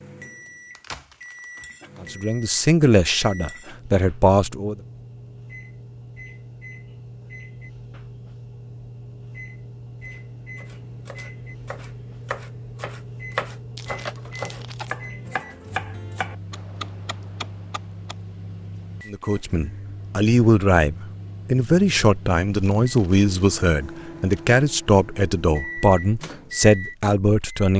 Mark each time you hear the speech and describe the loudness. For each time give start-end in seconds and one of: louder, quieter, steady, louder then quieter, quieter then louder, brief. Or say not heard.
2.0-4.8 brief
19.1-27.7 steady.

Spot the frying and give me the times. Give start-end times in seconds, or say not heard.
not heard.